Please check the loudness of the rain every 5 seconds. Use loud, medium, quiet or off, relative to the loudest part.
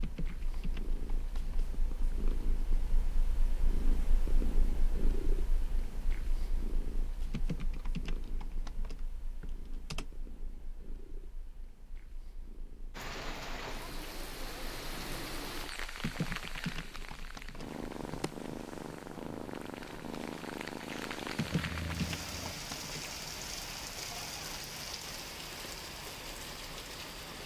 off, off, loud, loud, loud, loud.